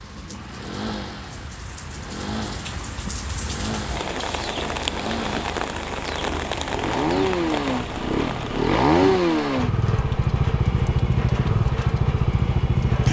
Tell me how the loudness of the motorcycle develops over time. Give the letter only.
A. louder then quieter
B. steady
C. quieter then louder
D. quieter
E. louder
E.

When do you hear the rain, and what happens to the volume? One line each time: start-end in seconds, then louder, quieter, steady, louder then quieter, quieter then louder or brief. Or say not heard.
0.0-13.0 louder then quieter.